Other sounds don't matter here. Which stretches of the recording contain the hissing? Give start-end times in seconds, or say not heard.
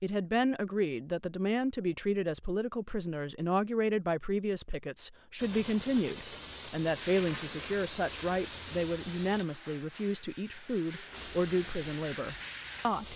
5.3-9.4, 11.1-13.1.